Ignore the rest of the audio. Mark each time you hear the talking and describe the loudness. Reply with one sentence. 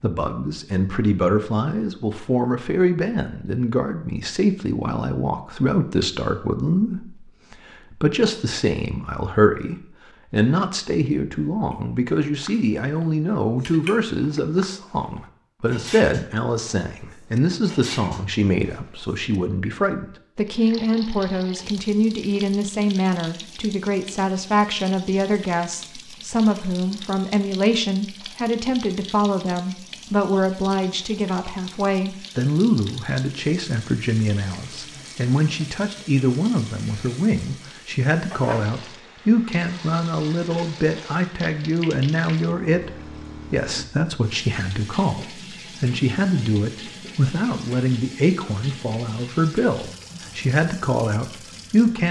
You can hear the talking from 0.0 to 52.0 s, at a steady volume.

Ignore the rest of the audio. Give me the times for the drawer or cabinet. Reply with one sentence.
The drawer or cabinet can't be heard in this clip.